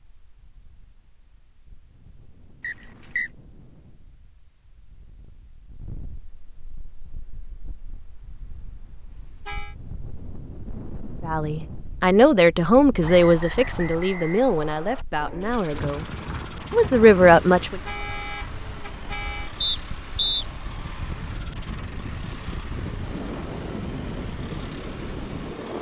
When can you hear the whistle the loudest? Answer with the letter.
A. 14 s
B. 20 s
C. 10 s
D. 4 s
B.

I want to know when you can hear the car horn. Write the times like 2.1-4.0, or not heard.
9.1-9.8, 17.6-19.6.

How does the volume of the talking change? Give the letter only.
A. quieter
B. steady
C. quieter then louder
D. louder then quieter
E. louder
C.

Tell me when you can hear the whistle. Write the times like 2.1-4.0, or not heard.
2.6-3.3, 13.0-15.1, 19.6-20.4.